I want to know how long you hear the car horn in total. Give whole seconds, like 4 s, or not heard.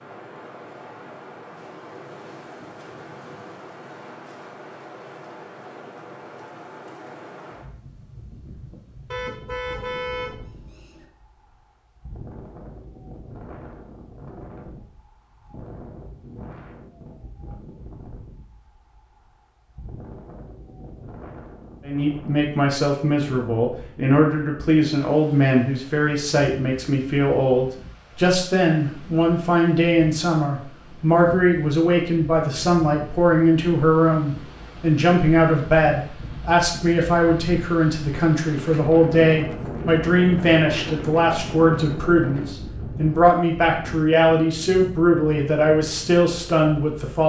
2 s.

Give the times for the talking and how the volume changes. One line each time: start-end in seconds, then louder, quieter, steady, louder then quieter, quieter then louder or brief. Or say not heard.
21.9-47.2 steady.